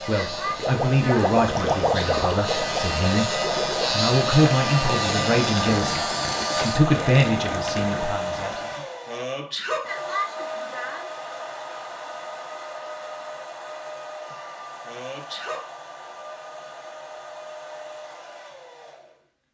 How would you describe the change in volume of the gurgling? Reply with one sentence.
The loudness of the gurgling goes down.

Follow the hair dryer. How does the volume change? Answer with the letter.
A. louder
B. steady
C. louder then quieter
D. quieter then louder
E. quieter
E.